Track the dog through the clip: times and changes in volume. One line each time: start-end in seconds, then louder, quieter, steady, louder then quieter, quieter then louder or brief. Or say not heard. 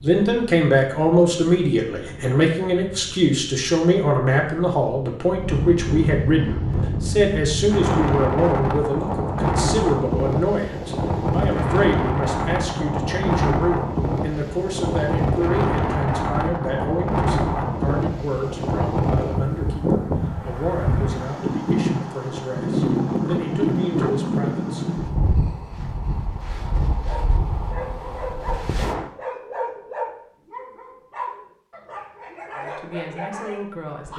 26.9-34.1 steady.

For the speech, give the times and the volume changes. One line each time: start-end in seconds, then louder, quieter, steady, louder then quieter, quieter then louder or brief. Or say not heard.
0.0-25.0 quieter
32.5-34.1 brief.